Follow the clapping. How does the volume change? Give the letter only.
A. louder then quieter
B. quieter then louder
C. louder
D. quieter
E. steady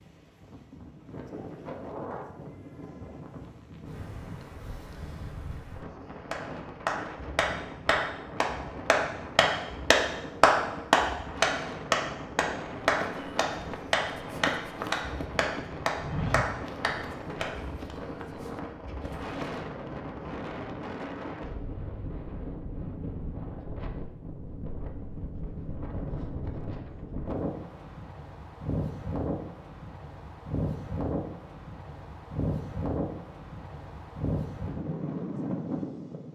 A.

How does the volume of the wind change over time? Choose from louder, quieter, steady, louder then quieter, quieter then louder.
louder.